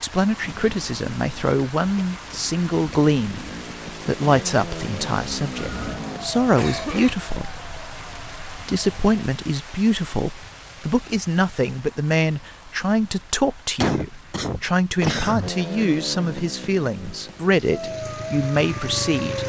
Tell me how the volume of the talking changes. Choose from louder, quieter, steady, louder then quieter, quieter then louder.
steady.